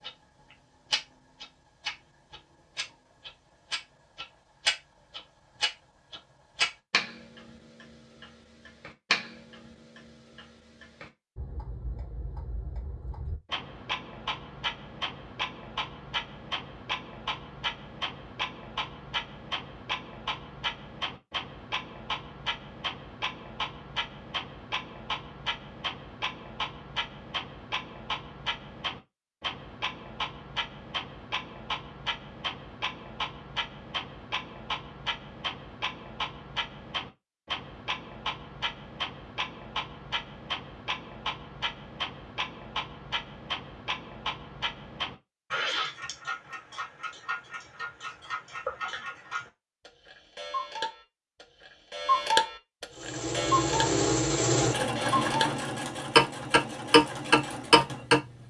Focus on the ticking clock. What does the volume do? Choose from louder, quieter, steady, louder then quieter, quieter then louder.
louder.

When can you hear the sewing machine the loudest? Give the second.
54 s.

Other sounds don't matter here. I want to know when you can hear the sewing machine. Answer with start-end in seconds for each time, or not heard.
52.9-58.4.